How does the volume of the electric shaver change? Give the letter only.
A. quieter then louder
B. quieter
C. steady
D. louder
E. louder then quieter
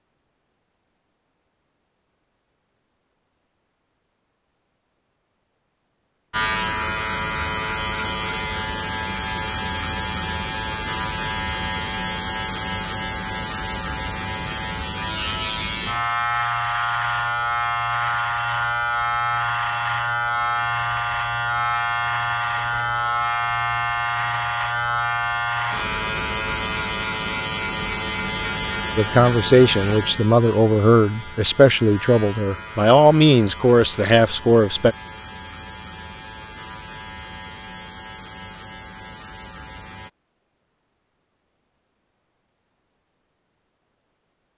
B.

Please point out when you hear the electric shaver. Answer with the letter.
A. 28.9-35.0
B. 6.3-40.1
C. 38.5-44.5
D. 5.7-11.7
B.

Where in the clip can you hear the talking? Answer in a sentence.
You can hear the talking from 28.9 to 35.0 s.